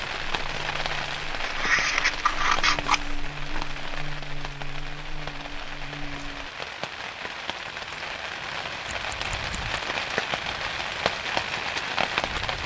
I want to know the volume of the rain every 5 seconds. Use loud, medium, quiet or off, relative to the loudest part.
medium, medium, loud.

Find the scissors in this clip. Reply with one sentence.
You can hear the scissors from 1.4 to 3.0 s and from 8.8 to 9.8 s.